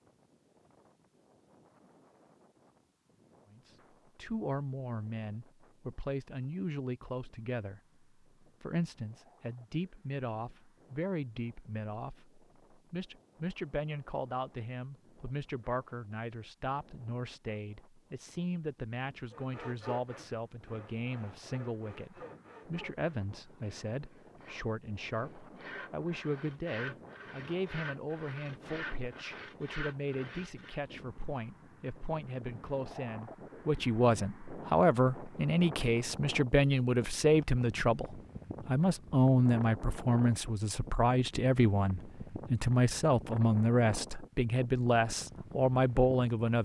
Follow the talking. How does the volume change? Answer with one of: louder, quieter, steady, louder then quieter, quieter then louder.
louder.